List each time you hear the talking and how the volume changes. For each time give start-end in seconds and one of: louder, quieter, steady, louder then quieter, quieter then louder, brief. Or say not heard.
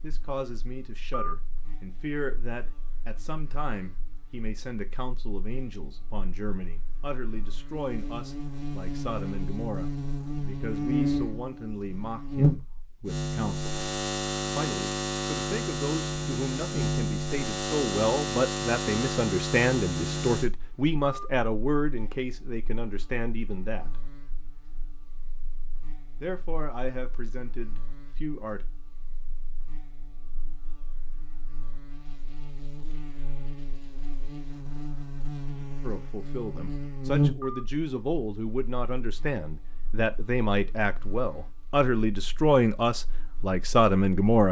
0.0-13.7 steady
14.6-24.0 louder then quieter
26.2-28.6 brief
35.8-44.4 louder.